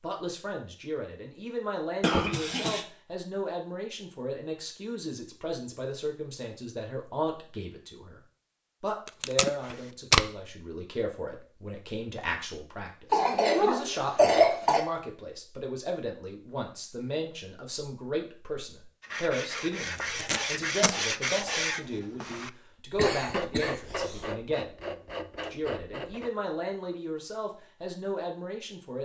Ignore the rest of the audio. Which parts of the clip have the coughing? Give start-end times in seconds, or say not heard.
2.0-2.9, 13.1-14.8, 22.9-24.2.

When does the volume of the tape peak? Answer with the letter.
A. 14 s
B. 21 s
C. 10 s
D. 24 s
C.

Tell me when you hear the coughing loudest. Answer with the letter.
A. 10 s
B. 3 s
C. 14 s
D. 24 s
C.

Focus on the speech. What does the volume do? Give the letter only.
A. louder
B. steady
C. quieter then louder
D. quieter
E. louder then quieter
B.